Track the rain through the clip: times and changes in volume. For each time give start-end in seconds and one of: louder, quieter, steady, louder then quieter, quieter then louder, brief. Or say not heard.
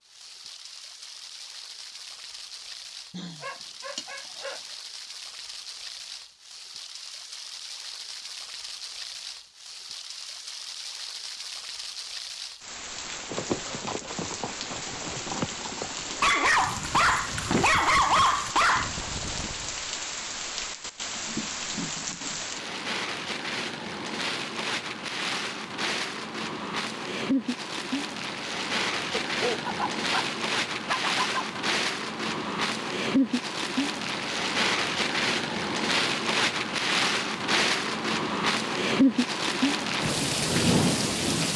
0.0-41.5 louder.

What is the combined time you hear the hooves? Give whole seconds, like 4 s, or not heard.
7 s.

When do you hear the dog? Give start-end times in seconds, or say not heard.
3.1-4.6, 16.2-18.9, 29.2-30.2, 30.9-31.6.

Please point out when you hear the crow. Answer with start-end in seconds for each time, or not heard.
not heard.